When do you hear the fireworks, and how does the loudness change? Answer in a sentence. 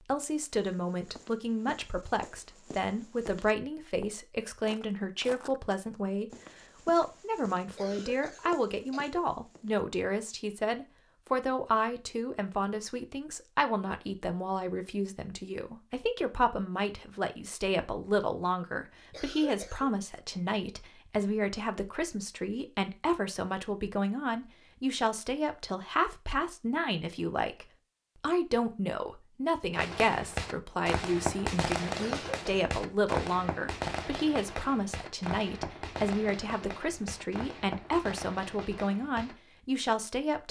You can hear the fireworks from 29.7 to 39.4 s, getting quieter.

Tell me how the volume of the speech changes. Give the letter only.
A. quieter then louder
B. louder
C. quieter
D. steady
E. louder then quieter
D.